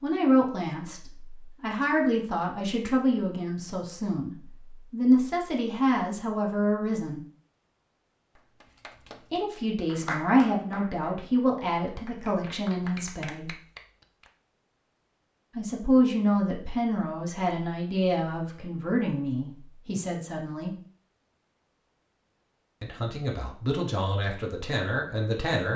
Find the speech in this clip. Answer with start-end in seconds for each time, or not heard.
0.0-7.2, 9.3-13.5, 15.6-20.8, 22.8-25.7.